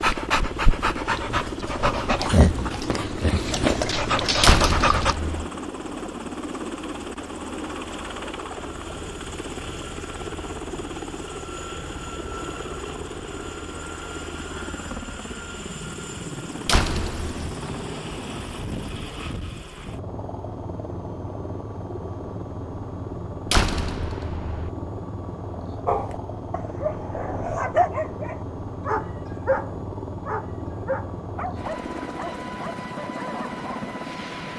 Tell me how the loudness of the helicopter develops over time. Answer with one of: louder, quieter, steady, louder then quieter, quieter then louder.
steady.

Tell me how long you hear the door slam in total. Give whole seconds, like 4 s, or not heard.
3 s.